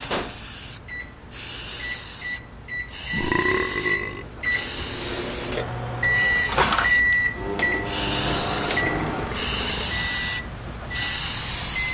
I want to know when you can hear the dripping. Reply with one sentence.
You can't hear the dripping here.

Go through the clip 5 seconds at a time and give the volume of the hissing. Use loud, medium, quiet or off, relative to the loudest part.
medium, loud, loud.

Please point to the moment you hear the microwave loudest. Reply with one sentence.
The volume of the microwave peaks at 7 seconds.